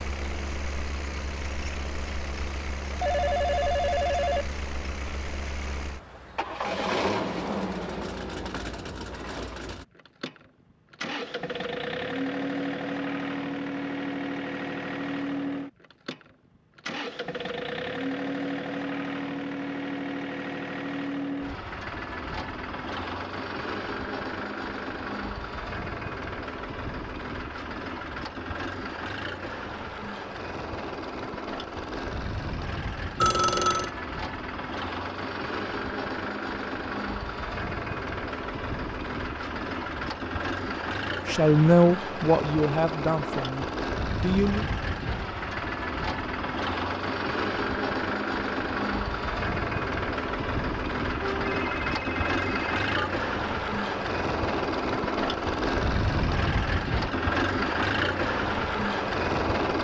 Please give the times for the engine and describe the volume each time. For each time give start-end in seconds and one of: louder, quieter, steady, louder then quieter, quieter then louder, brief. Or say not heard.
0.0-59.8 louder.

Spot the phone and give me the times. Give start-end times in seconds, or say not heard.
3.0-4.5, 33.2-33.9, 51.2-52.9.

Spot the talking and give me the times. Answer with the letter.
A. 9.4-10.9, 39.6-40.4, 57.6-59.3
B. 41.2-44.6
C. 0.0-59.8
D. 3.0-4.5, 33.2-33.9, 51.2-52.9
B.